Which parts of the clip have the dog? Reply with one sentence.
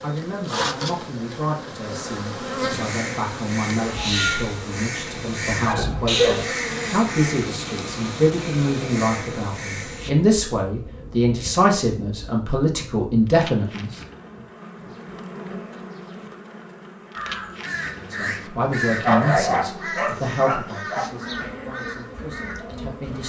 You can hear the dog from 5.5 to 6.5 s and from 19.1 to 21.1 s.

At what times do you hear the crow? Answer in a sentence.
You can hear the crow from 2.7 to 10.1 s and from 17.1 to 23.2 s.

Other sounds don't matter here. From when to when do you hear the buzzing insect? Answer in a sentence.
The buzzing insect can be heard from 0.0 to 23.2 s.